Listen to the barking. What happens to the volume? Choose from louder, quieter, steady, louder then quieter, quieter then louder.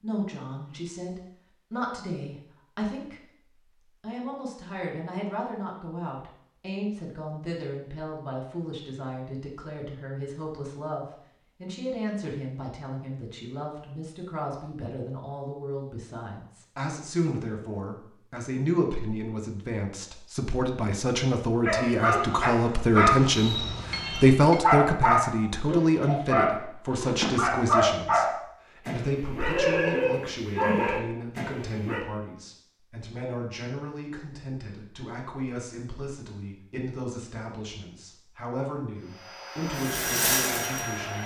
steady.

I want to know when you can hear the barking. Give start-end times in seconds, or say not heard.
21.6-32.0.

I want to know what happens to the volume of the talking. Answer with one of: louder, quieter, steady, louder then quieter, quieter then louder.
louder then quieter.